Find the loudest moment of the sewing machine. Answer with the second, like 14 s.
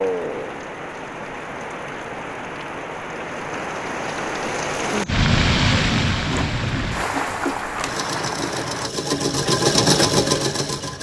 10 s.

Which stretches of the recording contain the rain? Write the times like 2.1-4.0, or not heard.
0.0-8.9.